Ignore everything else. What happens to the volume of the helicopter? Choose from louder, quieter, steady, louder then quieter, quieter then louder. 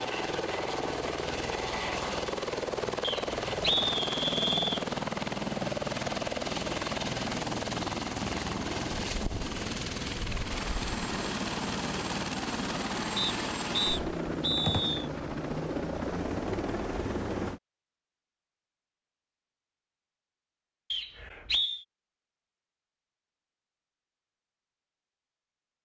steady.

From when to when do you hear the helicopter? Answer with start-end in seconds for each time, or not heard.
0.0-17.6.